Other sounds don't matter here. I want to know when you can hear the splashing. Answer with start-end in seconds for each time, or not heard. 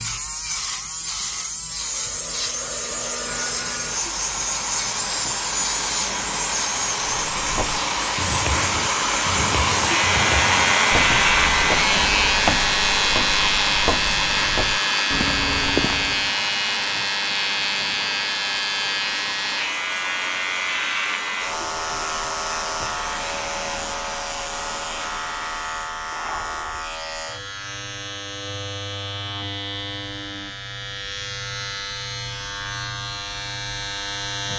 not heard.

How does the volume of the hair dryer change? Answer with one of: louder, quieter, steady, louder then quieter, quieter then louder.
louder then quieter.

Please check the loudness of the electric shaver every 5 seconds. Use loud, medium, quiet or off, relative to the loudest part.
medium, medium, loud, loud, medium, medium, medium.